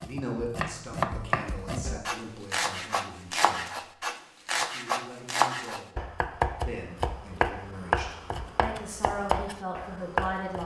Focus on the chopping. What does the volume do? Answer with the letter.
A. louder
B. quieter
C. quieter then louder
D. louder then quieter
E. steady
E.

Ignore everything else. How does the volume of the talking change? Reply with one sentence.
The loudness of the talking goes down, then up.